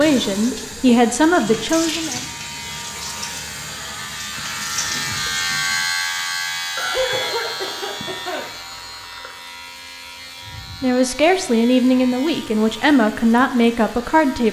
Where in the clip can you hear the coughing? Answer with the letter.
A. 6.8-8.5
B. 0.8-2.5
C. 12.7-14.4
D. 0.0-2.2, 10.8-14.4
A.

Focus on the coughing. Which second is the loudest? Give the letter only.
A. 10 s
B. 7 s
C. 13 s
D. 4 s
B.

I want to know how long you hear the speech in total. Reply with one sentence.
The speech can be heard for 6 seconds in total.